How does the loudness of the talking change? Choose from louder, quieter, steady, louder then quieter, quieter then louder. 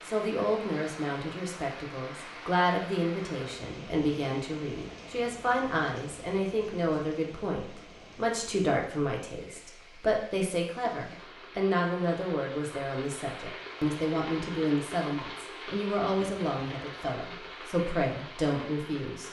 steady.